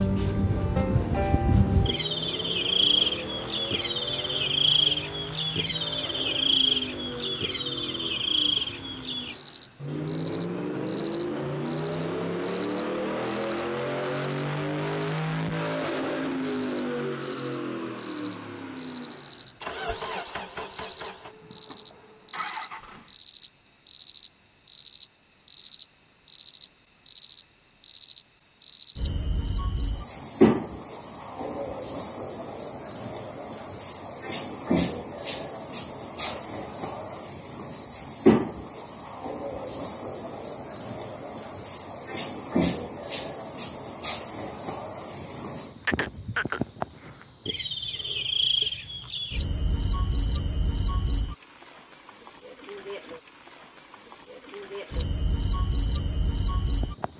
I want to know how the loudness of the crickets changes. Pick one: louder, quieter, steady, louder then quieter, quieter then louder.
steady.